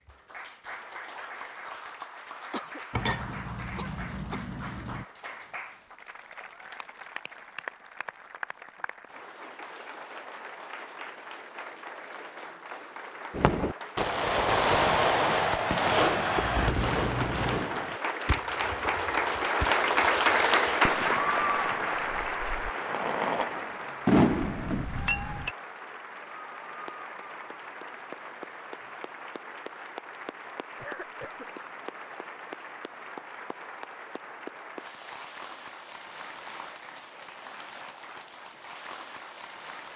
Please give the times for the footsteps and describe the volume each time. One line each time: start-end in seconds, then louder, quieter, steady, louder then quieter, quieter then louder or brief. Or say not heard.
not heard.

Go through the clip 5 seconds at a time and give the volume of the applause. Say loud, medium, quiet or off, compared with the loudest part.
quiet, quiet, quiet, loud, loud, quiet, quiet, quiet.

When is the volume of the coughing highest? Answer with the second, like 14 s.
17 s.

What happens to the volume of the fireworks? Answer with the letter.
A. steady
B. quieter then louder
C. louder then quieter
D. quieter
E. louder
B.